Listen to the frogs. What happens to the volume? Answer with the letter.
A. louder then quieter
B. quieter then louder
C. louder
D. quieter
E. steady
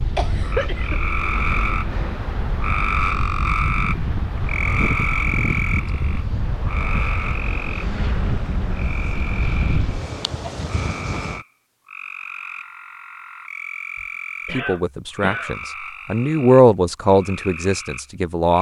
D.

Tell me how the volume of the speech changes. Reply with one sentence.
The loudness of the speech goes up, then down.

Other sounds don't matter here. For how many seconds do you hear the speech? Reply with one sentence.
You can hear the speech for 4 seconds altogether.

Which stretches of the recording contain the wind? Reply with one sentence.
You can hear the wind from 0.0 to 11.4 s.